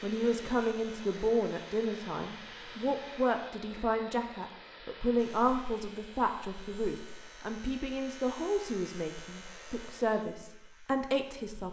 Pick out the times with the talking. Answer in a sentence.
The talking can be heard from 0.0 to 11.6 s.